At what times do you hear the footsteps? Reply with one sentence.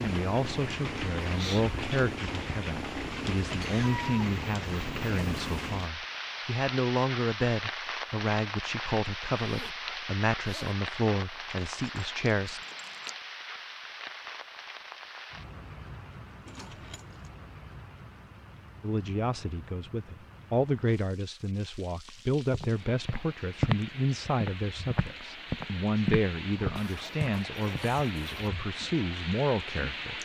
The footsteps can be heard from 22.5 to 27.9 s.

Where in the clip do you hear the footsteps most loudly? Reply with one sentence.
The loudest moment of the footsteps is at 24 seconds.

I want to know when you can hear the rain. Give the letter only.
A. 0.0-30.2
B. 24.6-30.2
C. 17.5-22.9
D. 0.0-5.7
A.